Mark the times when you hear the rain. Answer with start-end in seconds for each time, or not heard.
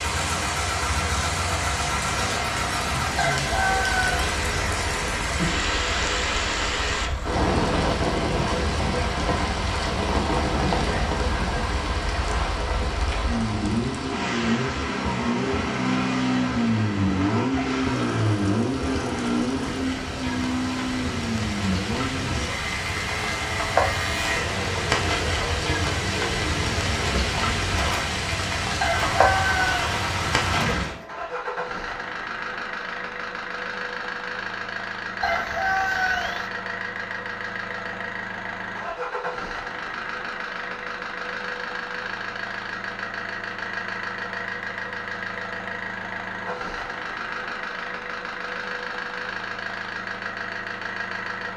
0.0-31.0.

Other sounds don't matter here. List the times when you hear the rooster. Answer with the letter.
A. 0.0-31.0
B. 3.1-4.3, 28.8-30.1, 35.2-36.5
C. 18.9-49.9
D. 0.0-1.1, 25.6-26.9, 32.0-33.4
B.